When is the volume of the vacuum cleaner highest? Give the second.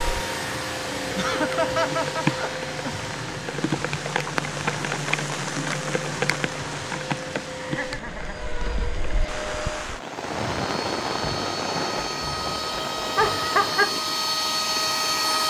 15 s.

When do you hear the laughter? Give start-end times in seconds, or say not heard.
1.1-3.0, 7.6-8.4, 13.2-13.9.